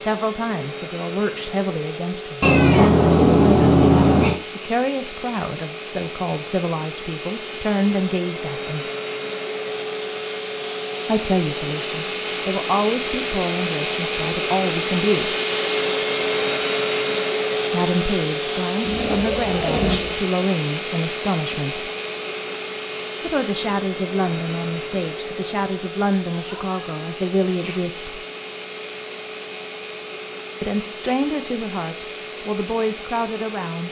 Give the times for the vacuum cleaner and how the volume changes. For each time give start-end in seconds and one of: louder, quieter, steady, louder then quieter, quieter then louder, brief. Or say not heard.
0.0-33.8 louder then quieter.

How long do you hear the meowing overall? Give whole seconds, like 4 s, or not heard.
5 s.